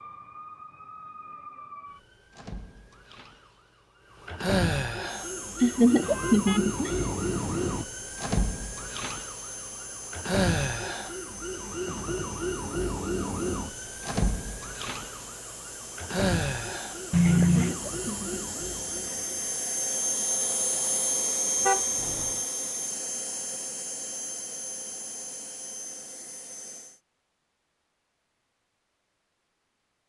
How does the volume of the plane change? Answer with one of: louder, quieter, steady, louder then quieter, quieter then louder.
louder then quieter.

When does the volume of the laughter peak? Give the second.
6 s.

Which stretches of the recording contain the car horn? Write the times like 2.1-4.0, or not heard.
5.8-7.8, 17.1-17.8, 21.6-22.4.